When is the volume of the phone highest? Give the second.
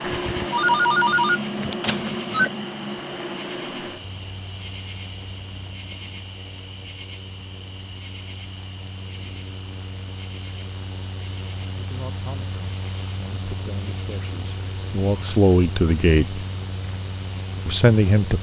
1 s.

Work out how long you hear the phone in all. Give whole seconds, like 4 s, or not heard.
2 s.